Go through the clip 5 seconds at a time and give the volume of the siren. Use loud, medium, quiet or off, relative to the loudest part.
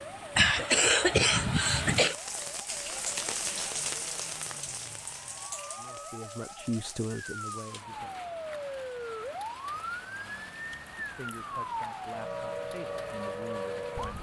medium, loud, loud.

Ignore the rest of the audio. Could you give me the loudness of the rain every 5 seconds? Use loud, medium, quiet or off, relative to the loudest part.
loud, medium, medium.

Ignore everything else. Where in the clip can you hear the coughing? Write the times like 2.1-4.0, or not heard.
0.3-2.1.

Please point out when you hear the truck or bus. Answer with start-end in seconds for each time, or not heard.
not heard.